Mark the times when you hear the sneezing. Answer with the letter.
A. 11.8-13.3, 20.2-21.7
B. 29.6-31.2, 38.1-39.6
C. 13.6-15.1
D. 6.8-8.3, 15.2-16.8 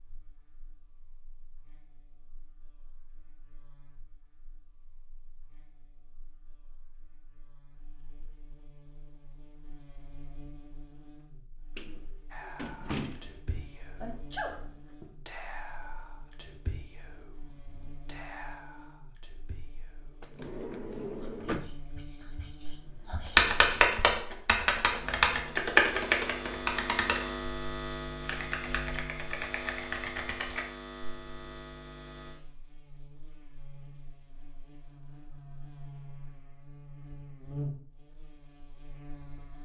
C.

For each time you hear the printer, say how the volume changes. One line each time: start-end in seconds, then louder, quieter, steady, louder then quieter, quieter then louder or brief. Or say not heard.
not heard.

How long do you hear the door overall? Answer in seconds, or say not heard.
3 s.